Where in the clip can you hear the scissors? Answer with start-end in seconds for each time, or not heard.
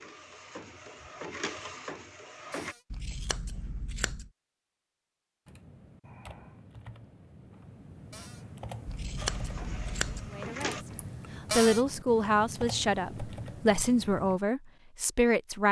2.9-4.3, 8.8-10.3.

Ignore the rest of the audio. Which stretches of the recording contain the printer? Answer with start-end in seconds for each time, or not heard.
0.0-2.8, 9.2-10.8.